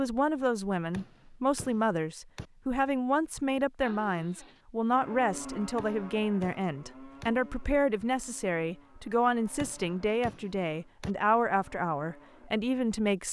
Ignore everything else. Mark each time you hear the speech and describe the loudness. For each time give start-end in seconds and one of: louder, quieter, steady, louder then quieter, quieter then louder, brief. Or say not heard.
0.0-13.2 steady.